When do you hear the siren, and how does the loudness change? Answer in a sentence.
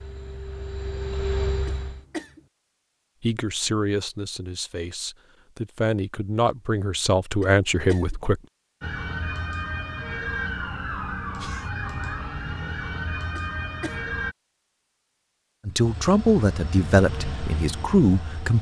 You can hear the siren from 8.8 to 14.3 s, at a steady volume.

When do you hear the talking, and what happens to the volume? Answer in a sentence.
You can hear the talking from 3.2 to 8.4 s, getting quieter then louder; and briefly from 15.7 to 18.5 s.